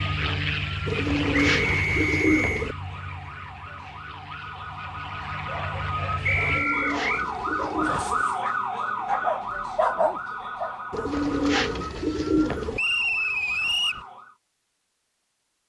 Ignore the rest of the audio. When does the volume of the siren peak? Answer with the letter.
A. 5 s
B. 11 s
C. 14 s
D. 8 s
D.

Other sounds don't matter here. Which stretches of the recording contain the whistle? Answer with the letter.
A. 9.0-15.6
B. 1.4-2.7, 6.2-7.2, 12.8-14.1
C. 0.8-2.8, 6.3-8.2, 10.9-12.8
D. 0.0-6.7
B.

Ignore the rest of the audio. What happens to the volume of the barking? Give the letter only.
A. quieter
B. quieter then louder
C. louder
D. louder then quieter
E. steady
C.